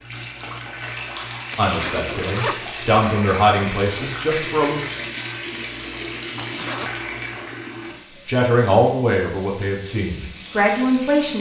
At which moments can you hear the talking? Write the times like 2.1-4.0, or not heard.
1.6-4.8, 8.2-11.3.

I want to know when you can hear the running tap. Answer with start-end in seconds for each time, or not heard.
0.0-11.3.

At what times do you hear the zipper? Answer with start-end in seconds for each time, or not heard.
1.5-3.2, 6.4-7.0.